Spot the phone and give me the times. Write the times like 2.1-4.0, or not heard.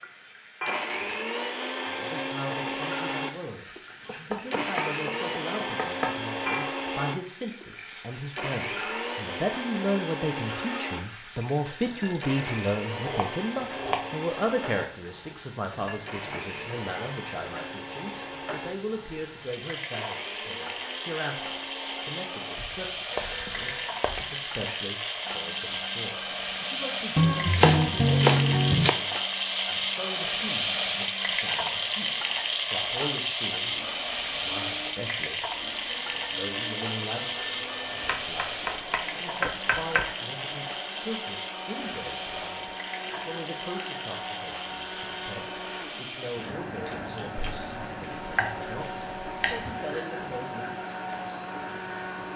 11.8-12.8, 23.1-23.9, 35.9-38.2.